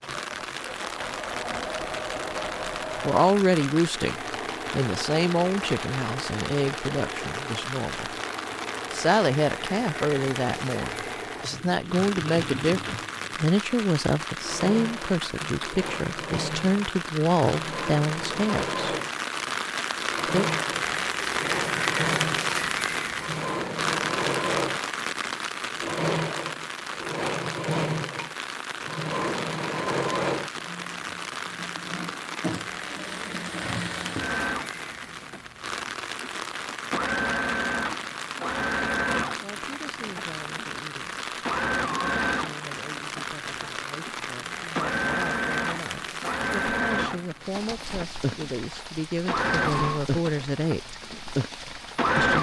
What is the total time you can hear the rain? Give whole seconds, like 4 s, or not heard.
52 s.